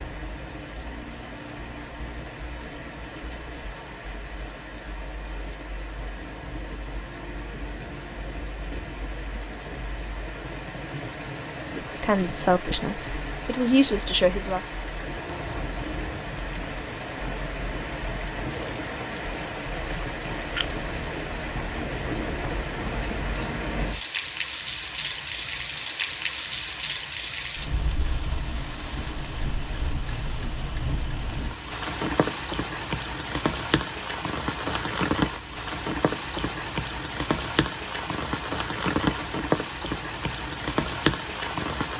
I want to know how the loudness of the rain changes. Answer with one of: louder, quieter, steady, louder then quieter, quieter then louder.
louder.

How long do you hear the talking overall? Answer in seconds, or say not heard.
3 s.